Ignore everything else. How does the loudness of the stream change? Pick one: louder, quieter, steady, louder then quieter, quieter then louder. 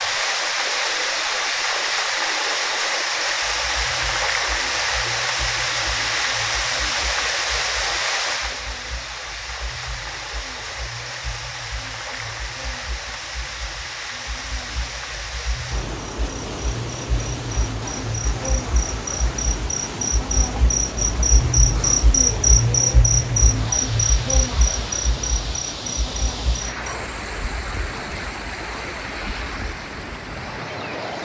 quieter.